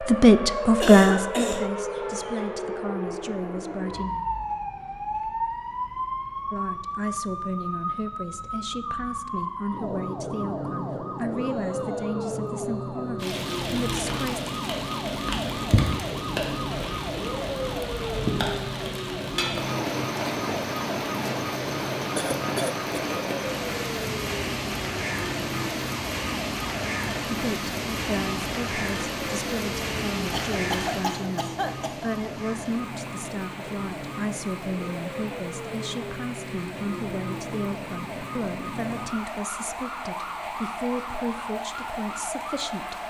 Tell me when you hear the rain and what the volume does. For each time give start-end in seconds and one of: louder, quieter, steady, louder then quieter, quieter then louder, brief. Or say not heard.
13.2-43.0 quieter.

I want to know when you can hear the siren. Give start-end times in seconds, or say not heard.
0.0-43.0.